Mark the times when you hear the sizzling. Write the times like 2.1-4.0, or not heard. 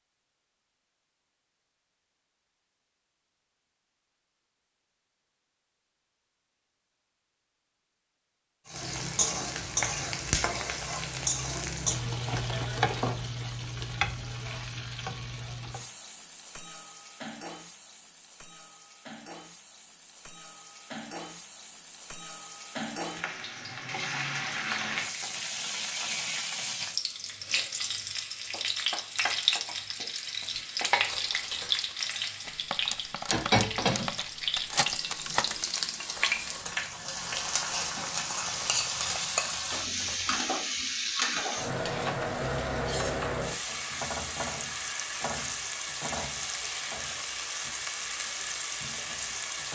8.7-49.7.